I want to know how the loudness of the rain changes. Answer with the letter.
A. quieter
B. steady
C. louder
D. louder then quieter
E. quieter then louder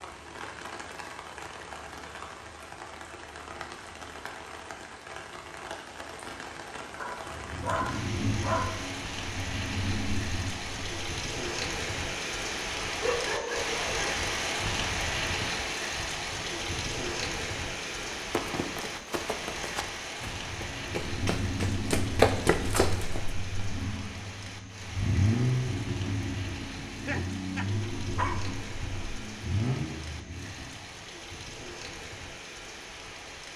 D.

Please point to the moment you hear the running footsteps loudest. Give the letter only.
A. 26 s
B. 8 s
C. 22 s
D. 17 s
C.